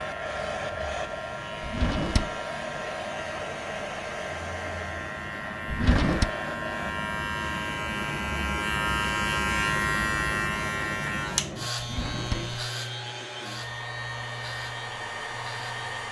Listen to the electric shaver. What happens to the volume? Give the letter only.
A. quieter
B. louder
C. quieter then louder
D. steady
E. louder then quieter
E.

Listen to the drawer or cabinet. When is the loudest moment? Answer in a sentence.
The loudest moment of the drawer or cabinet is at 6 seconds.